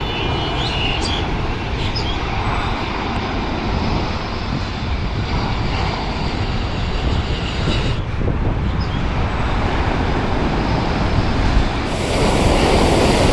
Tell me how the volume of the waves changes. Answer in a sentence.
The volume of the waves goes up.